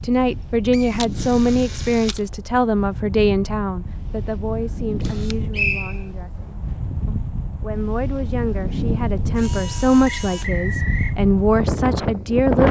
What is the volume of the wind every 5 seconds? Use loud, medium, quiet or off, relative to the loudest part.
medium, medium, loud.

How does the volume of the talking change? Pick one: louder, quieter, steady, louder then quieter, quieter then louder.
quieter then louder.